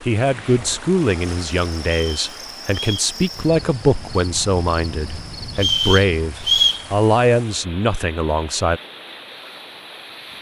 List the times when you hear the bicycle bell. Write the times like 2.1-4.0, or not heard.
not heard.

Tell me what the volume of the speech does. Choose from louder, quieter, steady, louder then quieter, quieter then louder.
steady.